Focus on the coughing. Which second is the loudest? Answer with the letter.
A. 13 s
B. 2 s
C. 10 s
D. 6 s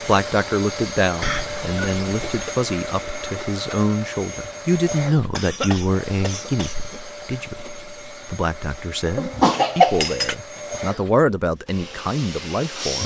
C.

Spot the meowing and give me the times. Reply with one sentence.
You can't hear the meowing here.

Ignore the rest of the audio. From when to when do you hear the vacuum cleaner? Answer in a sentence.
You can hear the vacuum cleaner from 0.0 to 13.0 s.